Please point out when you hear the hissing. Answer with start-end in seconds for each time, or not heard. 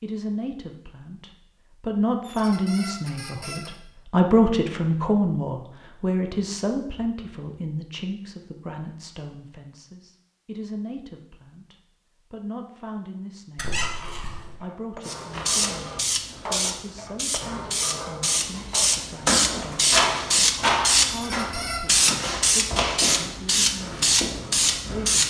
15.1-25.2.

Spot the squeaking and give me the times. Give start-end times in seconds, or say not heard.
2.2-3.8, 13.6-14.6, 21.1-22.1.